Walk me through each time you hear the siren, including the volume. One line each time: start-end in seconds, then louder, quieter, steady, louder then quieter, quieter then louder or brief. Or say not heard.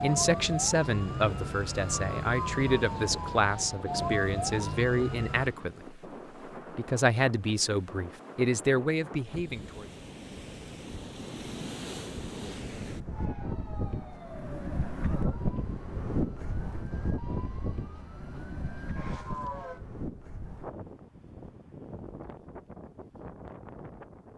0.0-5.5 steady
13.1-19.8 quieter then louder.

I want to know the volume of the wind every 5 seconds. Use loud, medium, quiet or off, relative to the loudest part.
medium, medium, loud, loud, medium.